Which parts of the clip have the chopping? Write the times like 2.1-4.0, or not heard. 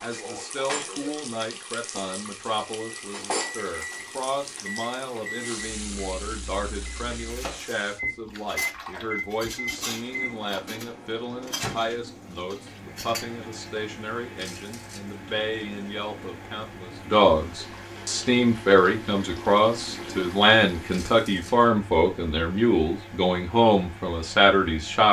not heard.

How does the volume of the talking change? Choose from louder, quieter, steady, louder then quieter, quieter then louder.
louder.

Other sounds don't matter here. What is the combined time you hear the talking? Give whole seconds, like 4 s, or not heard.
25 s.